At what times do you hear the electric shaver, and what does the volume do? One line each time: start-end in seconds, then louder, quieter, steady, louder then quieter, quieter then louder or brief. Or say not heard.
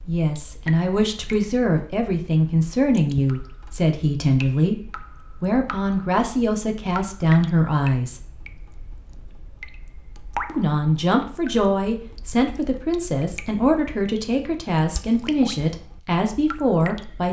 not heard.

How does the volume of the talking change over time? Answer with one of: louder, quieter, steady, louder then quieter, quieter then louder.
steady.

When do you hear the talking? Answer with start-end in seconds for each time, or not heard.
0.1-8.2, 10.4-17.2.